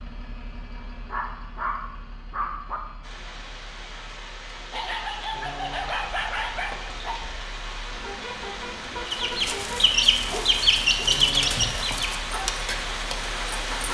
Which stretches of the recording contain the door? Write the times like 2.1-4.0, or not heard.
not heard.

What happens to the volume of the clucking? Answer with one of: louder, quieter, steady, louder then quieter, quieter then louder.
quieter.